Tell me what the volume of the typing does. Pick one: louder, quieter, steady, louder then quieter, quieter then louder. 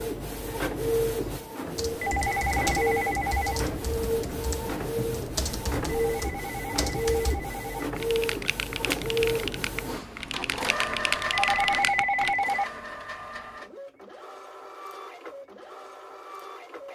louder.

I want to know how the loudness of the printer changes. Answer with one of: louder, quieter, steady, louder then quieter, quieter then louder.
quieter.